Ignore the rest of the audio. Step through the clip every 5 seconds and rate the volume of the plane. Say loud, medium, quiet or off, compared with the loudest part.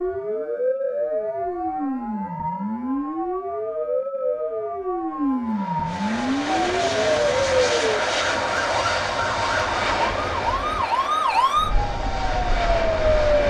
off, loud, loud.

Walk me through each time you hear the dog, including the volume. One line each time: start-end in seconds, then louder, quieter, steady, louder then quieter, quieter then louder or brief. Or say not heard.
not heard.